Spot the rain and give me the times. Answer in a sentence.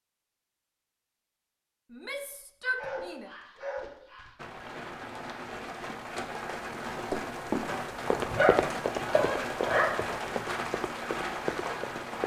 The rain can be heard from 4.3 to 12.2 s.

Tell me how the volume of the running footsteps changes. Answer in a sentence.
The volume of the running footsteps goes down.